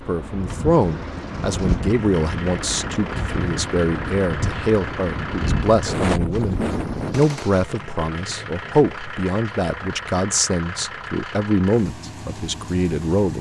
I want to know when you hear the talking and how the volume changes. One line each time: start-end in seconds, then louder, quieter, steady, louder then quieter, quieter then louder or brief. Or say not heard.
0.1-13.3 steady.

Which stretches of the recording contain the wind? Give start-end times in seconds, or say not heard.
0.0-7.3.